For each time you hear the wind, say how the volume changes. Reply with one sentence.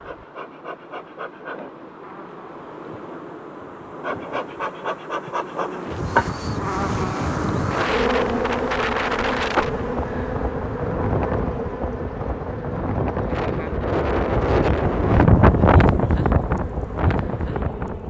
You can hear the wind from 5.8 to 18.0 s, getting louder.